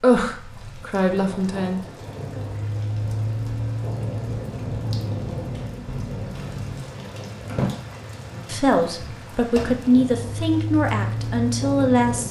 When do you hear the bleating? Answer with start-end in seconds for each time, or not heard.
not heard.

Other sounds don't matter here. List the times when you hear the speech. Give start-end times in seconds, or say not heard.
0.0-1.8, 8.4-12.2.